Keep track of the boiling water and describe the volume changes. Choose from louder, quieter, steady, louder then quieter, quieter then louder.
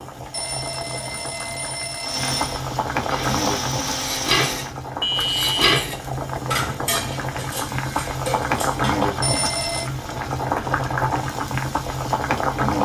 louder.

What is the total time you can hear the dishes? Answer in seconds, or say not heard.
6 s.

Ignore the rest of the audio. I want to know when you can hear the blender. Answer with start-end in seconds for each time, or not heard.
2.0-4.8.